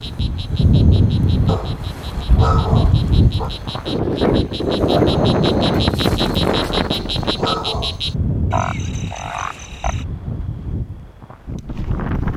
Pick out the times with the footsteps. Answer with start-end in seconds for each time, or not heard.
not heard.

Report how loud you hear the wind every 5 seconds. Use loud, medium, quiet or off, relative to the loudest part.
loud, loud, medium.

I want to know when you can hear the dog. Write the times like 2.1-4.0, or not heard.
1.4-3.5, 6.5-8.0.